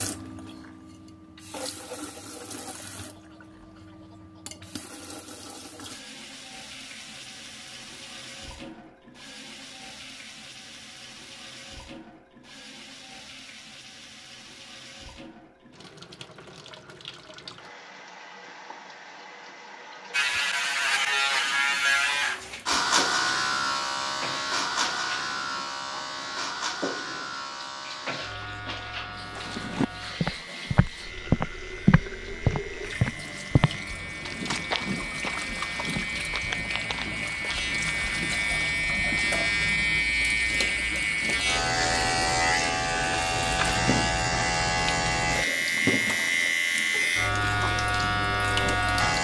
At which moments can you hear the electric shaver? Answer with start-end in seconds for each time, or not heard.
20.1-49.1.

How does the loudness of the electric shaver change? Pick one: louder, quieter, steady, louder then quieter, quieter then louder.
quieter then louder.